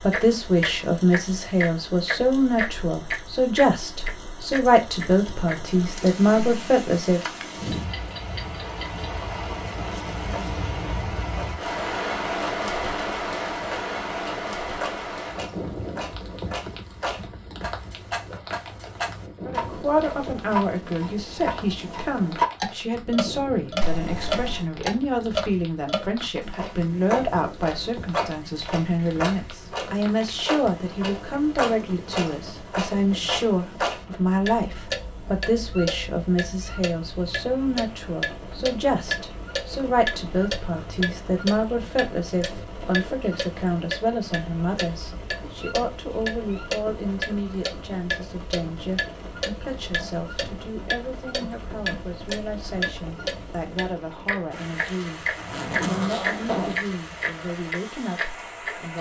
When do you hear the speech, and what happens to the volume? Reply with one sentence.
The speech can be heard from 0.0 to 7.2 s, at a steady volume; and from 19.4 to 58.9 s, getting quieter.